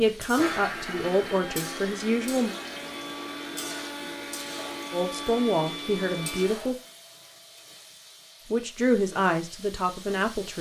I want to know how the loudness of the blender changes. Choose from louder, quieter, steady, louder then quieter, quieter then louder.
steady.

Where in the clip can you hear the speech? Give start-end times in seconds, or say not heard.
0.0-2.5, 4.9-6.8, 8.5-10.5.